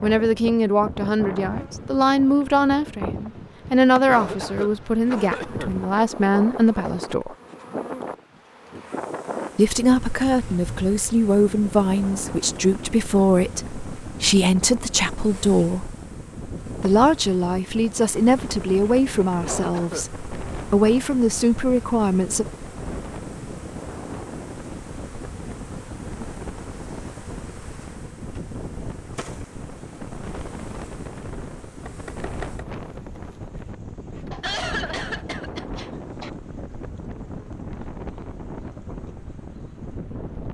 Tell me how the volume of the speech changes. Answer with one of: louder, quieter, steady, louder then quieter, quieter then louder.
steady.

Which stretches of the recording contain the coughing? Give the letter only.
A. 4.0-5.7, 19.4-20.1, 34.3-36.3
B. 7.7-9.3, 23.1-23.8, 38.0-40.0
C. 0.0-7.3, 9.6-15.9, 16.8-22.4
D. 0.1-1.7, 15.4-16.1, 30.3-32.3
A.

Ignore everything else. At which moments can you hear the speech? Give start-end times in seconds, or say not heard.
0.0-7.3, 9.6-15.9, 16.8-22.4.